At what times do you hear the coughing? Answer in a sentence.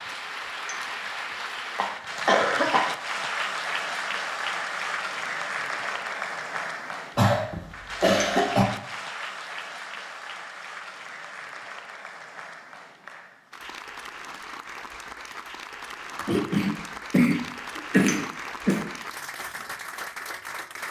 The coughing can be heard from 1.8 to 2.9 s, from 7.2 to 8.7 s and from 16.1 to 18.9 s.